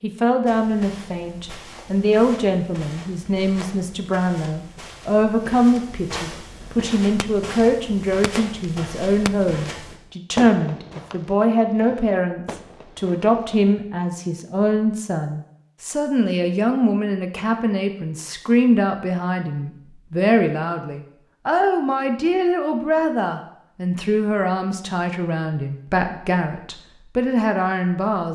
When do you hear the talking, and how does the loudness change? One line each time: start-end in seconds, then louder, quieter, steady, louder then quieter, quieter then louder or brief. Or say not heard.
0.0-28.3 steady.